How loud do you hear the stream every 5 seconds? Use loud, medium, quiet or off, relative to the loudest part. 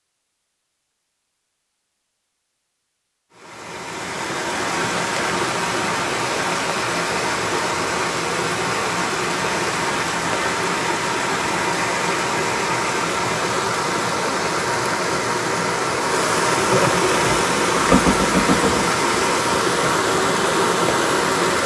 medium, loud, loud, loud, loud.